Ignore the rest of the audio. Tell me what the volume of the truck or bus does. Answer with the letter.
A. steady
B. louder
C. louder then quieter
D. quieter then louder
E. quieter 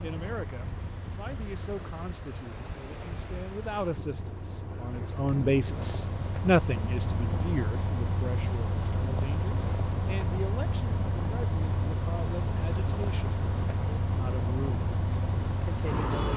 B.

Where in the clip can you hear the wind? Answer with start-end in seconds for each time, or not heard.
0.0-16.3.